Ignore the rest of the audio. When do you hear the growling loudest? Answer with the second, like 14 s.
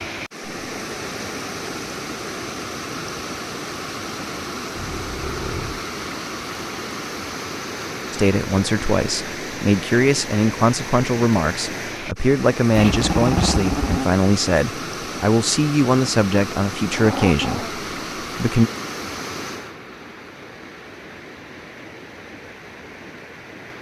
13 s.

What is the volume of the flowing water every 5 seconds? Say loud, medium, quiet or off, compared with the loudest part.
loud, loud, loud, loud, medium.